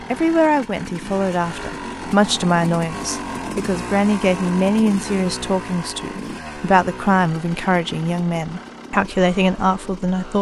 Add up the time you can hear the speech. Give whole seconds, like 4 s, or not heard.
10 s.